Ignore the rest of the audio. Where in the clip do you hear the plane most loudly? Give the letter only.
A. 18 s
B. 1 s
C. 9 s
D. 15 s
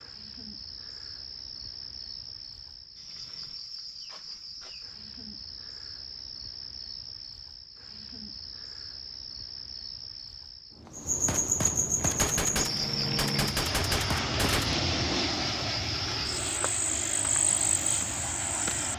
D.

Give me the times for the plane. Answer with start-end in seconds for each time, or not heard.
11.9-18.9.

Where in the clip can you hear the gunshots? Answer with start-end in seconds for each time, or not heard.
10.8-14.8.